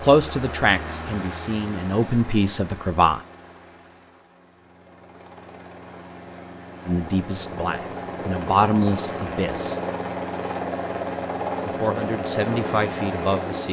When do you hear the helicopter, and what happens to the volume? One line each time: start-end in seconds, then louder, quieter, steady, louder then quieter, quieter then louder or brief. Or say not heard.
0.0-13.6 quieter then louder.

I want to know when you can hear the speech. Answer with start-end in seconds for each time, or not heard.
0.0-3.2, 6.8-9.8, 11.6-13.6.